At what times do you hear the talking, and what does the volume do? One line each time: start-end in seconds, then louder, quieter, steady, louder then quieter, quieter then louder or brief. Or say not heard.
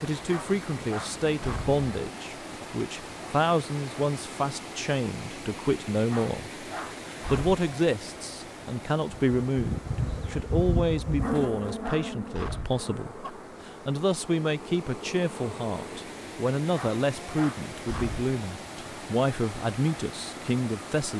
0.0-21.1 steady.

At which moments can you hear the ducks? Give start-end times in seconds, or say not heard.
not heard.